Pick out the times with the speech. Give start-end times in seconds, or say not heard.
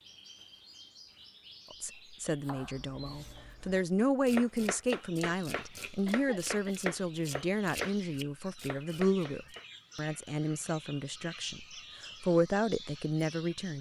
1.7-13.7.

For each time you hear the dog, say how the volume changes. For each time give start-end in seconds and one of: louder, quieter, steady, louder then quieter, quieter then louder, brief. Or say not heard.
not heard.